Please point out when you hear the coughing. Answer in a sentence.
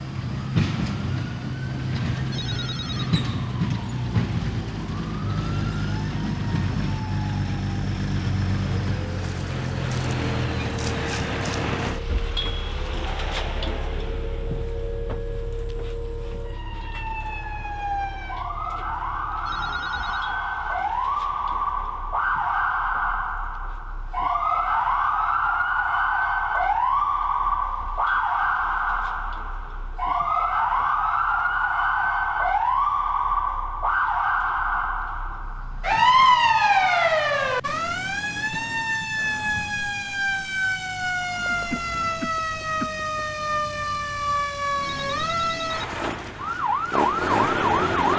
You can hear the coughing from 41.4 to 43.0 s.